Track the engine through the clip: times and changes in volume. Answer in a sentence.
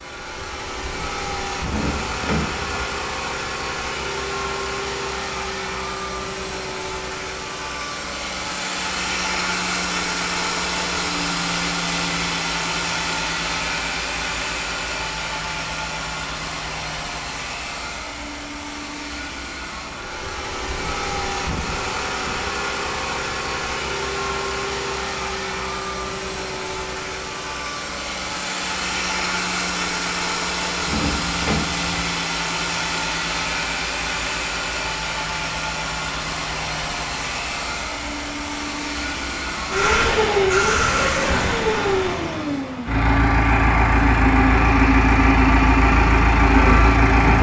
The engine can be heard from 0.0 to 47.3 s, getting louder.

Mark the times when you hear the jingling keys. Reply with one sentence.
The jingling keys can be heard from 1.6 to 3.0 s and from 30.9 to 31.9 s.